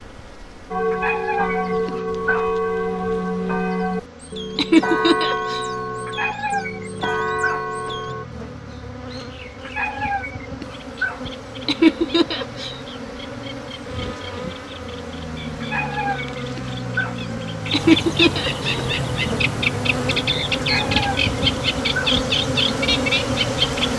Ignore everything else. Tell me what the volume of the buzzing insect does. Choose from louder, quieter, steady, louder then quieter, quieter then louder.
louder.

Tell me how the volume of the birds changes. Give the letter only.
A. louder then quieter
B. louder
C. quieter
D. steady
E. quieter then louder
B.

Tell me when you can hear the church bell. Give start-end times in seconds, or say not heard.
0.7-8.2.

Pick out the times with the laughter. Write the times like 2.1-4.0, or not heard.
4.5-5.7, 11.7-12.8, 17.7-18.8.